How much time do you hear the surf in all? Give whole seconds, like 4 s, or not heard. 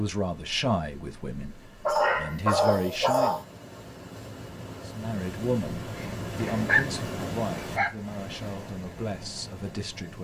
10 s.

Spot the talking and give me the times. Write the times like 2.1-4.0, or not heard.
0.0-3.4, 4.8-10.2.